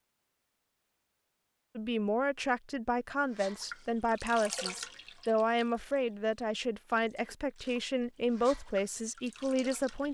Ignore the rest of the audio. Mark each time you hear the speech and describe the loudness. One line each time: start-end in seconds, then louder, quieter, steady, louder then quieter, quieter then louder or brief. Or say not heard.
1.8-10.0 steady.